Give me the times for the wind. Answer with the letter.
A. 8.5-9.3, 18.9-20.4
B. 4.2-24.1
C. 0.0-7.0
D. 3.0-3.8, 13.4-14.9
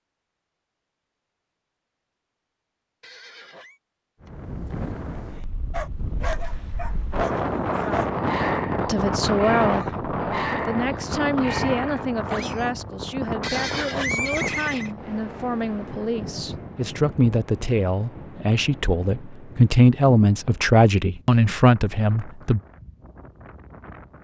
B.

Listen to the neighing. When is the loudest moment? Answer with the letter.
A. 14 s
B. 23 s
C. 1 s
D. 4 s
A.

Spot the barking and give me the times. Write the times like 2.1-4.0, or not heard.
5.7-12.8.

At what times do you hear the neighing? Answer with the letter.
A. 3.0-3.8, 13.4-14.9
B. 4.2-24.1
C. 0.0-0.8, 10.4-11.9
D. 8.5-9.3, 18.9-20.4
A.